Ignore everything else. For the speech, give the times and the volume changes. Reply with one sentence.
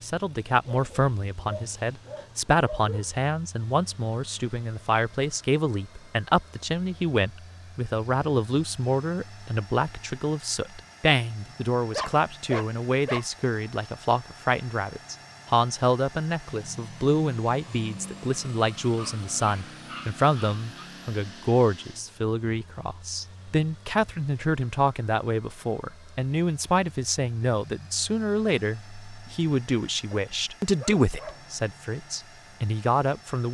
You can hear the speech from 0.0 to 33.5 s, at a steady volume.